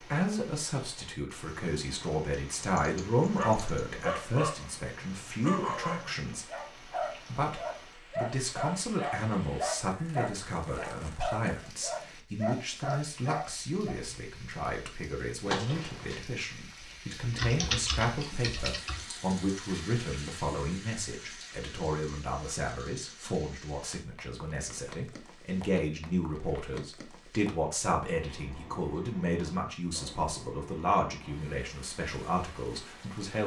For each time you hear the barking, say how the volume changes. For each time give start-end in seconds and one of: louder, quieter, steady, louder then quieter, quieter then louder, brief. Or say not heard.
3.4-13.9 steady.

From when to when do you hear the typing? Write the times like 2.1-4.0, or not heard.
2.5-4.0, 17.3-19.0.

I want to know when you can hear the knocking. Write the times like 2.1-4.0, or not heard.
15.4-16.2.